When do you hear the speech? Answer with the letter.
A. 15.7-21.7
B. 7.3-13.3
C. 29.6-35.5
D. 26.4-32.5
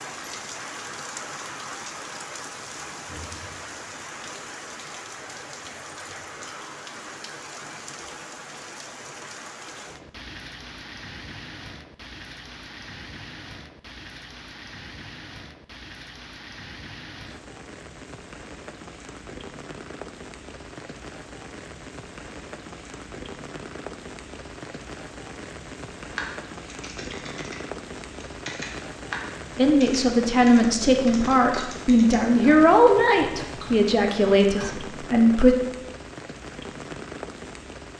C.